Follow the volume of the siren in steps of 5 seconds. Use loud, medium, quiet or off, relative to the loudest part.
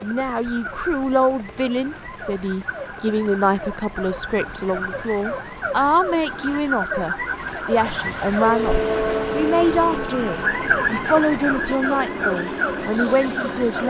medium, loud, loud.